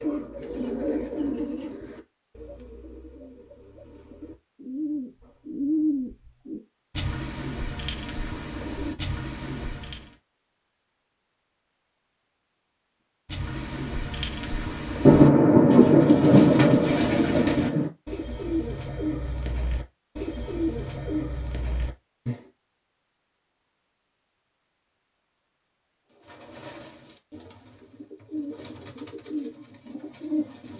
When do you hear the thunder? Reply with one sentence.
The thunder can be heard from 15.1 to 17.9 s.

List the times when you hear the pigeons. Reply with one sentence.
The pigeons can be heard from 0.0 to 10.2 s, from 13.2 to 22.4 s and from 26.1 to 30.7 s.